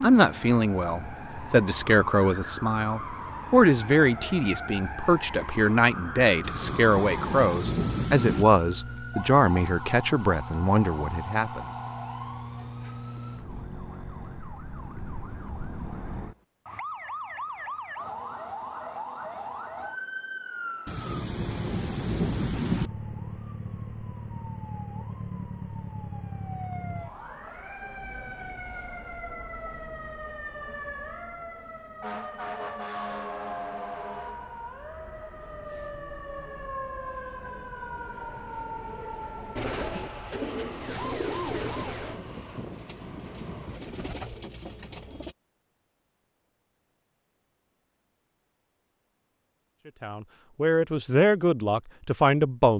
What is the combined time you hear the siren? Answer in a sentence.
The siren can be heard for 42 seconds in total.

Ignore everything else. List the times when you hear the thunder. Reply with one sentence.
The thunder can be heard from 6.4 to 8.4 s, from 20.9 to 22.9 s and from 42.3 to 44.1 s.